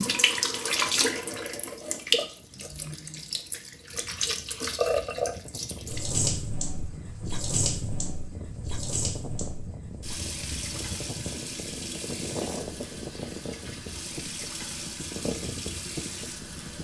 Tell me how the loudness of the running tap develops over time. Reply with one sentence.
The volume of the running tap goes down.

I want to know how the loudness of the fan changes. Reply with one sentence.
The volume of the fan goes up.